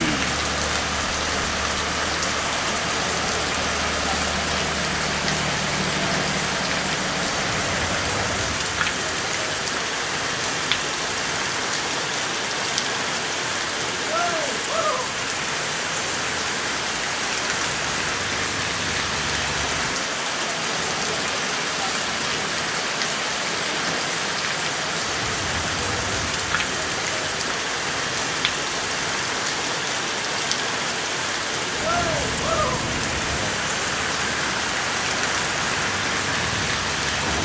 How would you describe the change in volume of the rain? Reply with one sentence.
The volume of the rain stays about the same.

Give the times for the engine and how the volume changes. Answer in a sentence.
You can hear the engine from 0.0 to 8.3 s, at a steady volume; and from 31.6 to 37.3 s, at a steady volume.